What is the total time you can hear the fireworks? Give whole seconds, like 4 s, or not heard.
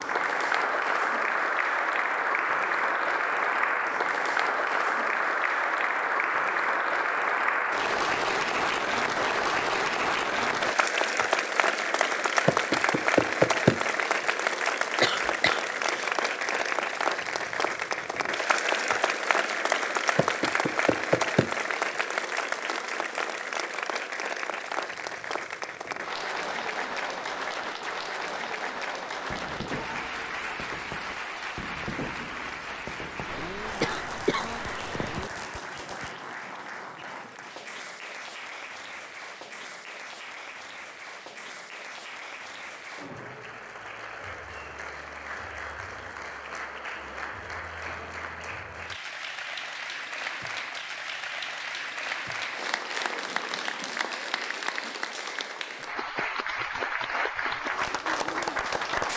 7 s.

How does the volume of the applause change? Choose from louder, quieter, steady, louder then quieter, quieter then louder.
quieter then louder.